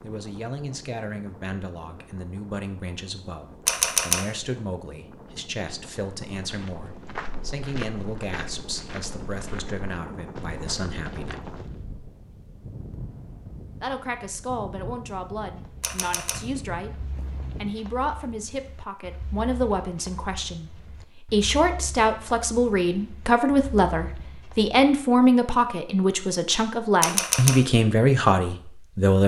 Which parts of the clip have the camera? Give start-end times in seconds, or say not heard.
3.6-4.2, 15.8-16.4, 27.0-27.6.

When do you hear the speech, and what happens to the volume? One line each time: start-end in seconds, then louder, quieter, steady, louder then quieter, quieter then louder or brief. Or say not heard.
0.0-11.4 steady
13.8-29.2 louder.